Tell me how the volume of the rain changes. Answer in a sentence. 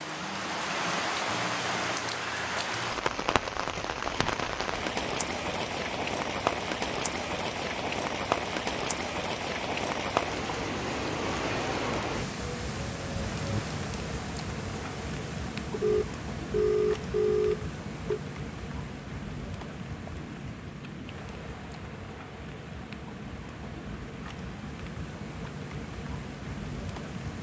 The loudness of the rain goes down.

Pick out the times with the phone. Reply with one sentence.
You can hear the phone from 15.7 to 18.2 s.